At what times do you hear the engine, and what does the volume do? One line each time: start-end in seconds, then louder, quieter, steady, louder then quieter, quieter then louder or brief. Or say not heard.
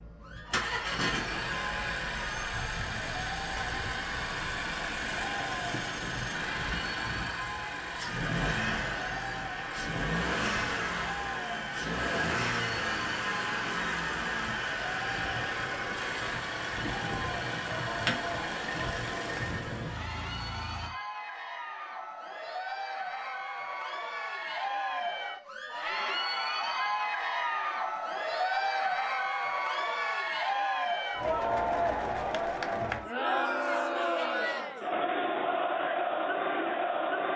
0.0-20.9 steady.